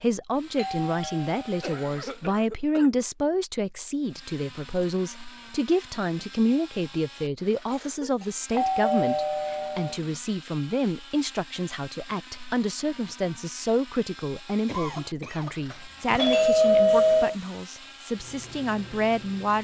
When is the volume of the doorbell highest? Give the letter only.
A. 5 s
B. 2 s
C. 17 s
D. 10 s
C.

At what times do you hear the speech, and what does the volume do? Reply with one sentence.
The speech can be heard from 0.0 to 19.5 s, at a steady volume.